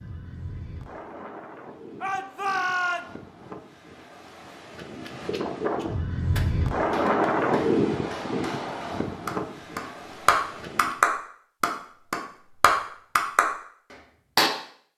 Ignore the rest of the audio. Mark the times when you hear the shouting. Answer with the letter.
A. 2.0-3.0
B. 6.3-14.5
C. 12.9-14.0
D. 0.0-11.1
A.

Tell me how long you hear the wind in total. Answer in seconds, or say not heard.
11 s.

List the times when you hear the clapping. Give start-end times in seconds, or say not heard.
6.3-14.5.